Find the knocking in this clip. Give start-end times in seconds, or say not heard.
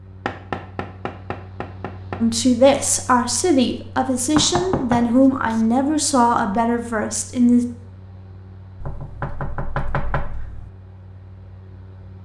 0.2-2.2, 4.3-5.6, 8.8-10.7.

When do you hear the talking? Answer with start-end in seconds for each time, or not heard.
2.2-7.7.